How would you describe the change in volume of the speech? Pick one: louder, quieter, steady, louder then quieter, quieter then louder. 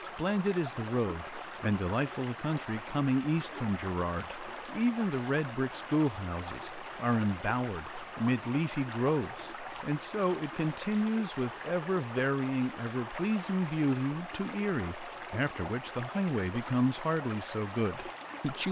steady.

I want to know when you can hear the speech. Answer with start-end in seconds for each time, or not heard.
0.0-18.6.